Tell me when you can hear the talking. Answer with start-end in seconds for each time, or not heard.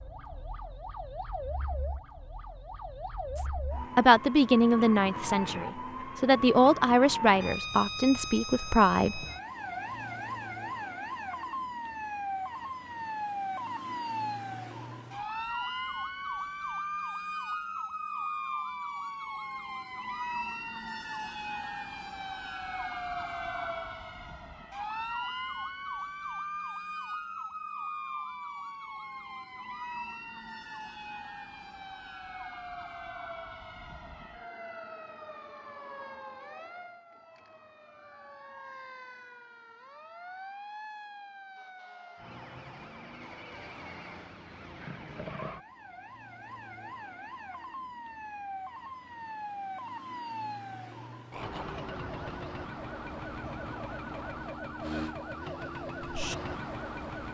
3.4-9.2.